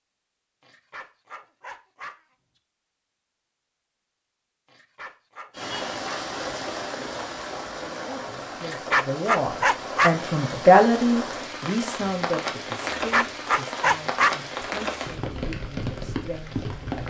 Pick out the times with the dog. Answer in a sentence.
The dog can be heard from 0.6 to 2.1 s, from 4.7 to 6.2 s, from 8.6 to 10.2 s and from 12.8 to 14.3 s.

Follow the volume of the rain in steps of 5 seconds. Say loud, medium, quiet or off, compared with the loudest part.
off, loud, loud, loud.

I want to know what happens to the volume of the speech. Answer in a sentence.
The loudness of the speech goes up, then down.